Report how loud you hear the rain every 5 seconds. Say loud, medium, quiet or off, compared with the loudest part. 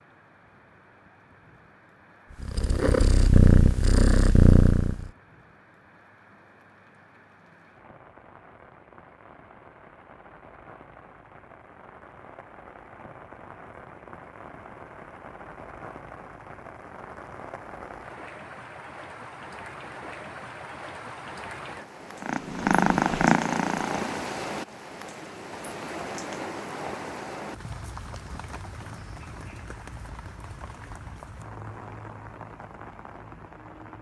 quiet, quiet, medium, medium, loud, loud, medium.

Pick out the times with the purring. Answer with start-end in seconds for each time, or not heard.
2.4-5.1, 22.2-24.2.